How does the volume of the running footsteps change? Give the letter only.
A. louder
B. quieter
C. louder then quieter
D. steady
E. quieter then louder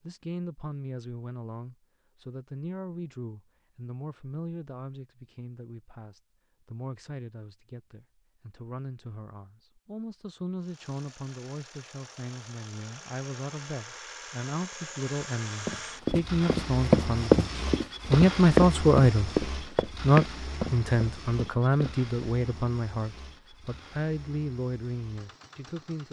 B.